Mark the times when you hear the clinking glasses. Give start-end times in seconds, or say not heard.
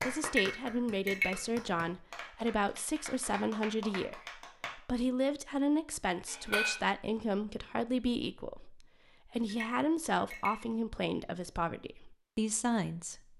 0.2-1.3, 6.2-6.8, 9.4-10.6.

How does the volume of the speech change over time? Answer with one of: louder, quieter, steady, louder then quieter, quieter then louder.
steady.